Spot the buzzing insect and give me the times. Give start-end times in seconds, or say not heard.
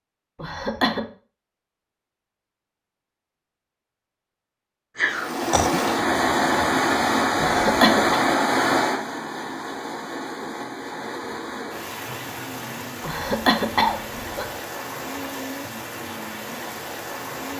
not heard.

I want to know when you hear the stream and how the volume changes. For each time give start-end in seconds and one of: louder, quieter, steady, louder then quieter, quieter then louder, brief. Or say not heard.
5.0-17.5 quieter.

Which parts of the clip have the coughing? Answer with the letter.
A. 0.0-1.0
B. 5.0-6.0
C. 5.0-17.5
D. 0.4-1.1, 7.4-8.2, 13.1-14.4
D.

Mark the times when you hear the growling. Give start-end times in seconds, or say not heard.
5.0-6.0.